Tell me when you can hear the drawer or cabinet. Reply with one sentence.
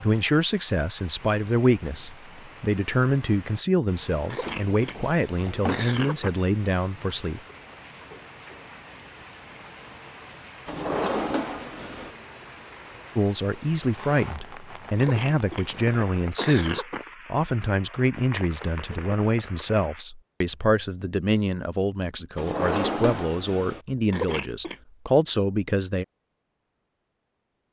The drawer or cabinet can be heard from 4.4 to 5.8 s, from 10.7 to 12.1 s and from 22.4 to 23.8 s.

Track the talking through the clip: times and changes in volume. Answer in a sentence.
The talking can be heard from 0.0 to 7.4 s, at a steady volume; and from 13.2 to 26.1 s, at a steady volume.